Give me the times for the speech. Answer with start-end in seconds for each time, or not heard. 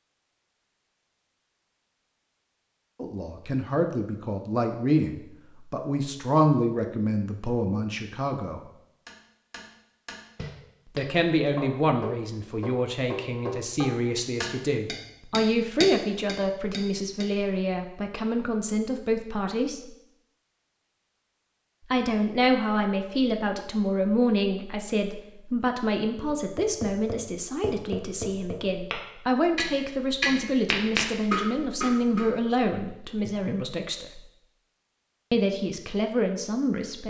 3.0-8.6, 10.9-19.9, 21.9-34.2, 35.3-37.0.